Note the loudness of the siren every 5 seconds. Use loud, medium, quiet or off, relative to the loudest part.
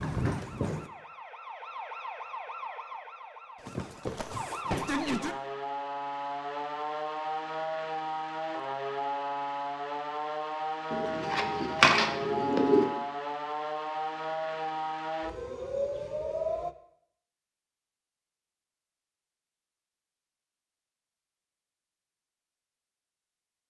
loud, loud, loud, loud, off.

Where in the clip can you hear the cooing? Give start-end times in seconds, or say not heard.
10.9-12.9.